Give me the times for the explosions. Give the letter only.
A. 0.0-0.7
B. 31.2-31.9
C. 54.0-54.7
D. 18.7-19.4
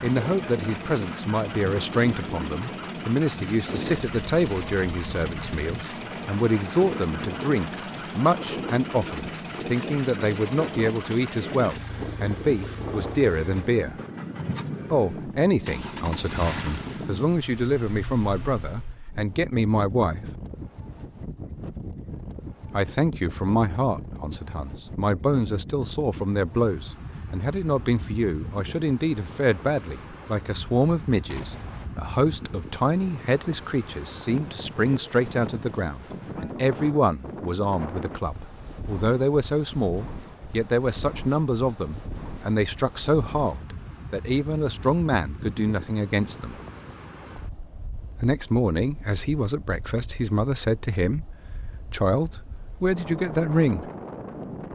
B.